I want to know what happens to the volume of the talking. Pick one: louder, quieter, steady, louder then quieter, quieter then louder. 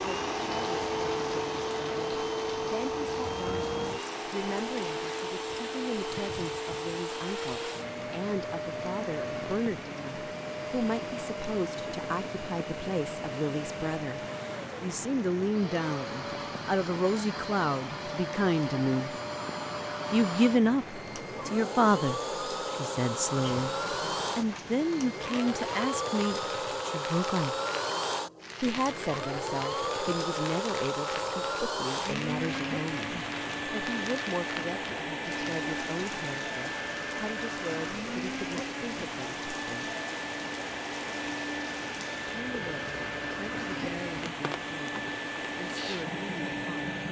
louder then quieter.